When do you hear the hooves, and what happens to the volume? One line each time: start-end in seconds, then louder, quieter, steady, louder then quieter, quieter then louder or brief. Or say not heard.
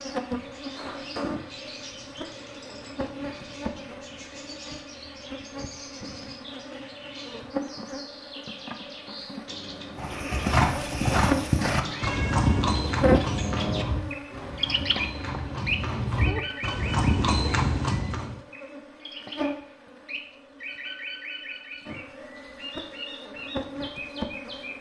9.9-18.4 quieter then louder.